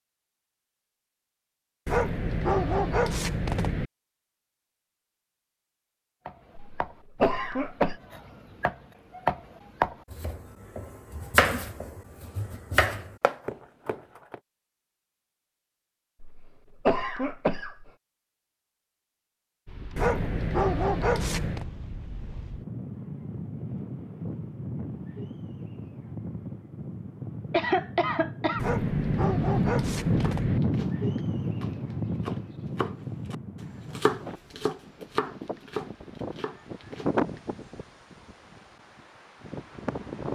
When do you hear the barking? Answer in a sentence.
The barking can be heard from 1.9 to 3.9 s, from 19.9 to 21.6 s and from 28.6 to 30.6 s.